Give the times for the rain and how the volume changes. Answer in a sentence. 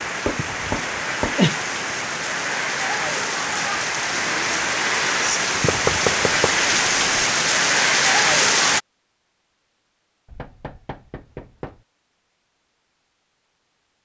You can hear the rain from 0.0 to 8.8 s, getting louder.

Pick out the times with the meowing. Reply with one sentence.
The meowing can't be heard in this clip.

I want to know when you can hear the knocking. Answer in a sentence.
You can hear the knocking from 0.2 to 1.6 s, from 5.5 to 7.2 s and from 10.2 to 11.8 s.